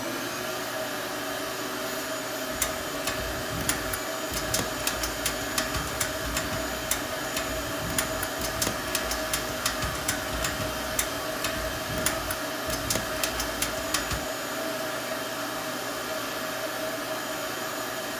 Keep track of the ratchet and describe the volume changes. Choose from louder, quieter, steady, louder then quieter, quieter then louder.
steady.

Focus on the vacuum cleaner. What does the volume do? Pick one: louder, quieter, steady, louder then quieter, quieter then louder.
steady.